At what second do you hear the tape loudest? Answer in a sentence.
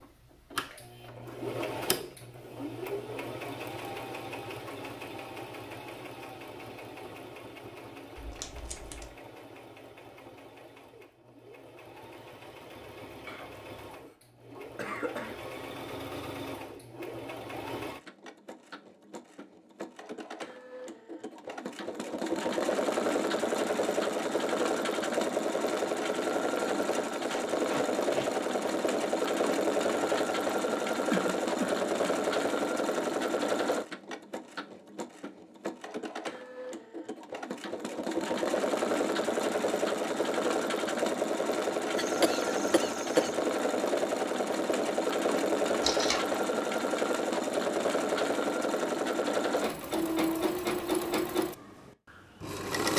The volume of the tape peaks at 46 seconds.